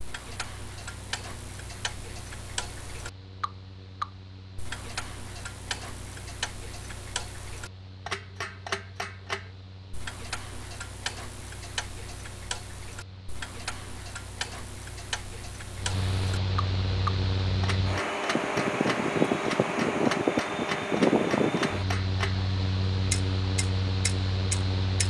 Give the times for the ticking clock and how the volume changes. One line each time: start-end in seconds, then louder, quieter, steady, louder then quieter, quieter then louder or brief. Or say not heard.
0.0-22.4 steady
23.1-25.0 brief.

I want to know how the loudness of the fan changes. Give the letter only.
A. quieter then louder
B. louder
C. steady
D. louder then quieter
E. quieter
B.